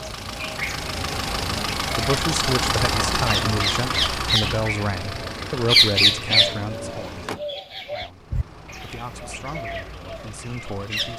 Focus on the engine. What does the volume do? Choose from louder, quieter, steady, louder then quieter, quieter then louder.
quieter.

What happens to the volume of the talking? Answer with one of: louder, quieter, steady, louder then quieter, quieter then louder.
quieter.